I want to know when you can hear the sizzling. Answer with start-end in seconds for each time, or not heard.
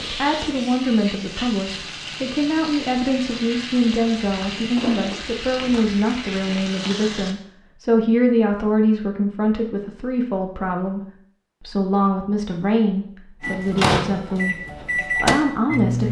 0.0-7.3.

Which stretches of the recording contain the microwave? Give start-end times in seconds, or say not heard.
13.4-16.0.